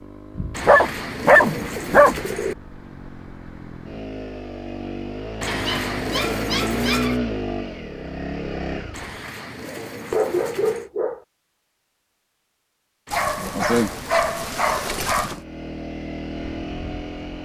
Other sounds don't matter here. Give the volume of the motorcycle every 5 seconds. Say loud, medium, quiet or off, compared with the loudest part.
medium, loud, off, medium.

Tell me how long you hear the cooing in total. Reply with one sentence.
You can hear the cooing for 8 seconds altogether.